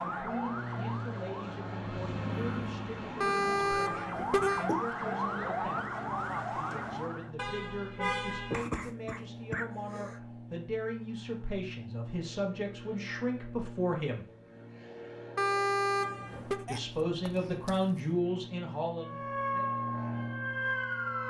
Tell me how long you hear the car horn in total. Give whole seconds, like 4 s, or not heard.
4 s.